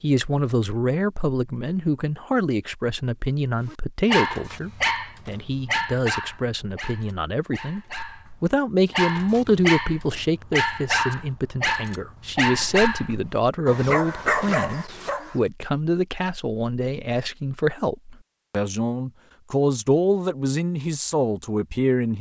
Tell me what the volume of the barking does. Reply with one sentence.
The volume of the barking goes down, then up.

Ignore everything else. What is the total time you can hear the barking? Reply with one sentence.
The barking can be heard for 12 seconds in total.